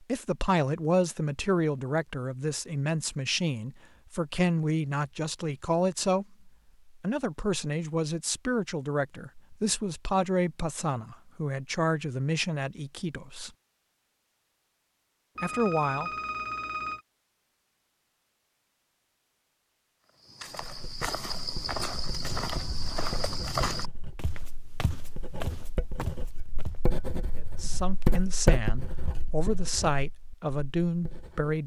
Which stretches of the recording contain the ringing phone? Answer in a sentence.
You can hear the ringing phone from 15.3 to 17.0 s.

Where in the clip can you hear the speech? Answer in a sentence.
You can hear the speech from 0.0 to 13.5 s, from 15.4 to 16.1 s and from 27.6 to 31.6 s.